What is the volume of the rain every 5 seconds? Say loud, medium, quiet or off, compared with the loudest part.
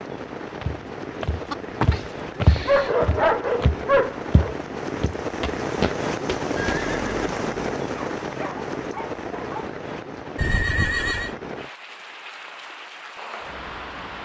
medium, loud, medium.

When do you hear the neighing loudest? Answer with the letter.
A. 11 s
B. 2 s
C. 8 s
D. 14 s
A.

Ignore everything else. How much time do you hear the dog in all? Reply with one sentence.
You can hear the dog for 4 seconds altogether.